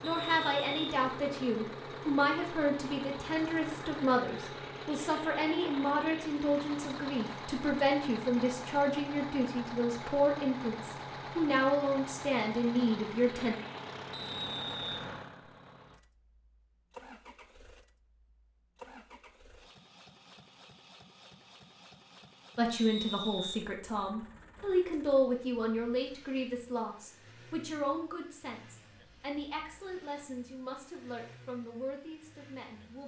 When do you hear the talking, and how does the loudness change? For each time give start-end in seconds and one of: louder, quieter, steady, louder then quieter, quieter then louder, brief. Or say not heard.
0.0-13.6 steady
22.6-33.0 quieter.